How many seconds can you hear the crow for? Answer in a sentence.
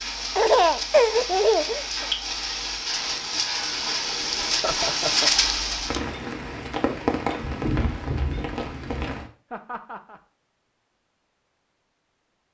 The crow can't be heard in this clip.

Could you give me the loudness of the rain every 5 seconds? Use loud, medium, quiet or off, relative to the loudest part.
loud, loud, off.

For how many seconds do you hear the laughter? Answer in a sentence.
The laughter can be heard for 3 seconds in total.